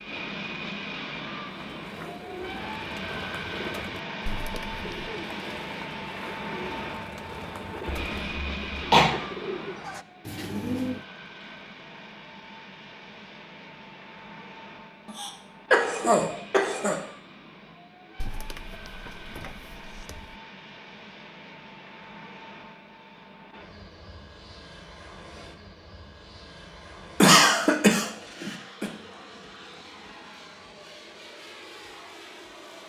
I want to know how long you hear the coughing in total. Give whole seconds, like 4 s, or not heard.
5 s.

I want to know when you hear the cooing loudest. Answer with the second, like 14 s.
11 s.